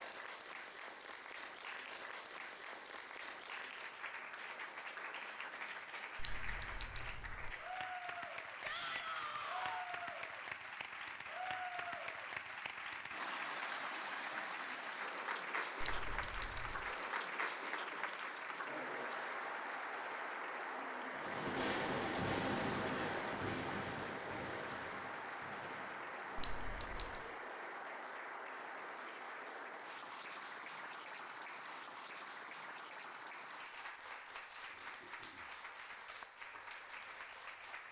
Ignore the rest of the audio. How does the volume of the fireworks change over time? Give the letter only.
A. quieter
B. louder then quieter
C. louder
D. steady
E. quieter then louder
A.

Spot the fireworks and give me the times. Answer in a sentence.
You can hear the fireworks from 21.1 to 27.4 s.